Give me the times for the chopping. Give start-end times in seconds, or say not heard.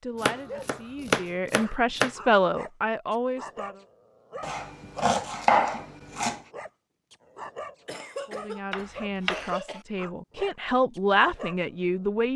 0.2-2.1, 4.4-6.4, 8.7-9.5.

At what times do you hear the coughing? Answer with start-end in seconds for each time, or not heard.
0.3-1.1, 7.8-9.8.